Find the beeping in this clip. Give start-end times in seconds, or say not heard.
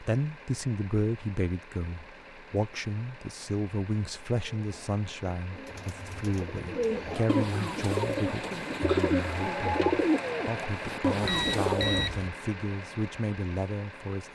11.2-12.3.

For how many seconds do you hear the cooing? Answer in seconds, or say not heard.
8 s.